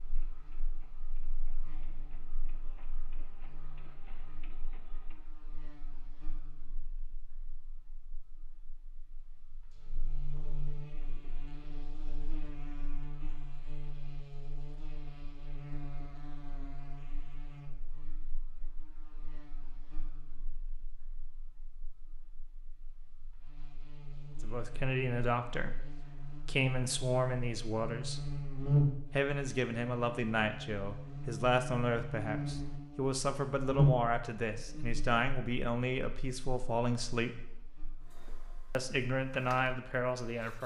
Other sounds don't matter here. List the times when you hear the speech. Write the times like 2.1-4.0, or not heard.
24.4-28.2, 29.1-37.4, 38.7-40.6.